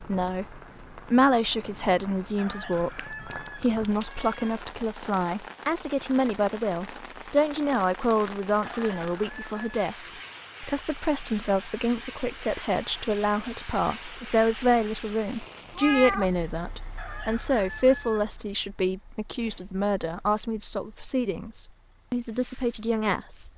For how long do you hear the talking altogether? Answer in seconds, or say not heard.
23 s.